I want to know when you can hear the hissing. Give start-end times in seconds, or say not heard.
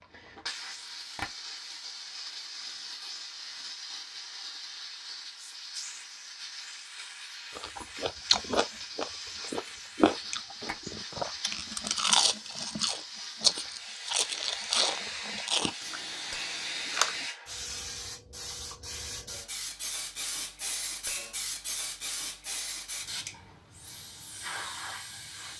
0.0-25.5.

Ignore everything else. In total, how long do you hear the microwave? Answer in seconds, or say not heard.
not heard.